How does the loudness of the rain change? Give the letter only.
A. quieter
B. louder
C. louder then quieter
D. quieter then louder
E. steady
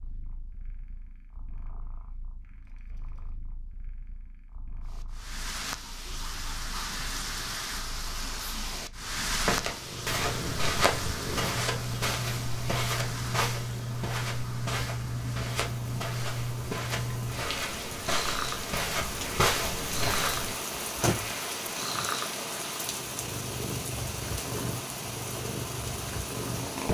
D.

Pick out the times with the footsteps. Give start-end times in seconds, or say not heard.
9.3-20.6.